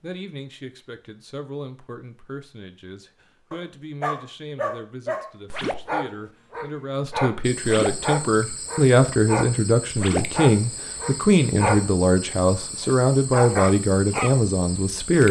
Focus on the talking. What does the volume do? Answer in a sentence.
The volume of the talking goes up.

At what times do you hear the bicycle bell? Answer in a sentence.
The bicycle bell can't be heard in this clip.